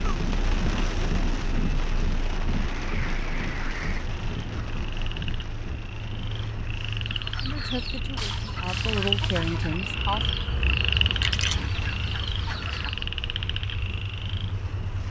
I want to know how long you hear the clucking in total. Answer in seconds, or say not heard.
6 s.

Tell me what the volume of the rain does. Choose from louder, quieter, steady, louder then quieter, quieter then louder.
quieter.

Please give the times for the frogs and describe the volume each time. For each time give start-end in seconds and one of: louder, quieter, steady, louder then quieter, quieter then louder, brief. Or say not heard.
2.7-15.0 louder then quieter.